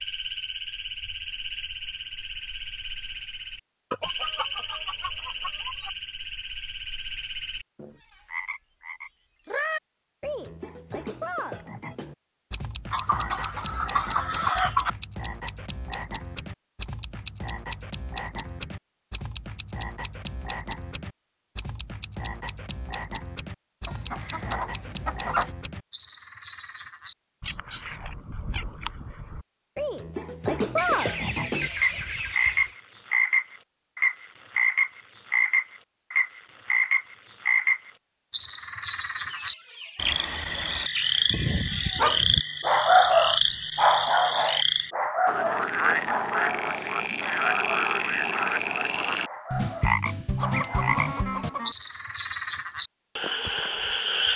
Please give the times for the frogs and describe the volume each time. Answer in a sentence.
You can hear the frogs from 0.0 to 54.3 s, getting louder.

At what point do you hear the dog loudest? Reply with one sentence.
The loudest moment of the dog is at 43 seconds.